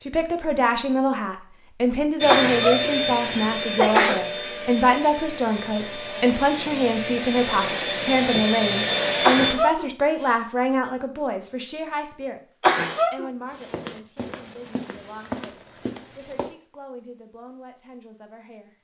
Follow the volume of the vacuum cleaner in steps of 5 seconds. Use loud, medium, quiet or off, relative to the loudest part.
loud, loud, off, off.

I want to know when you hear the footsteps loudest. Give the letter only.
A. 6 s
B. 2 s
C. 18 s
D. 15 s
D.